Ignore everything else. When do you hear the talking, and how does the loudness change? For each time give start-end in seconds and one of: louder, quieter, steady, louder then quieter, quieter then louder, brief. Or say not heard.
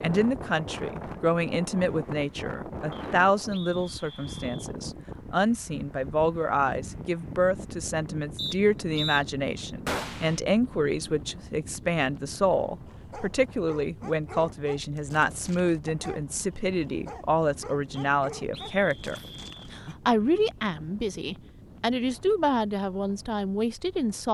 0.0-24.2 steady.